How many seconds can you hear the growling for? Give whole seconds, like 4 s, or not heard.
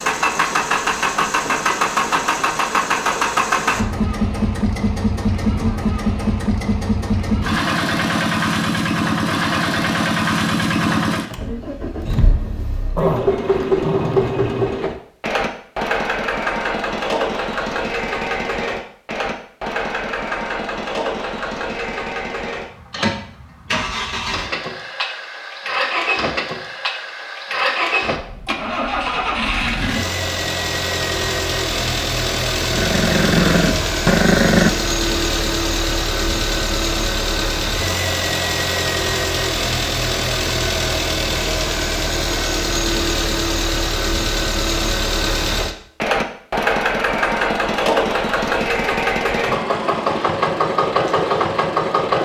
4 s.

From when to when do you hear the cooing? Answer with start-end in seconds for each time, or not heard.
not heard.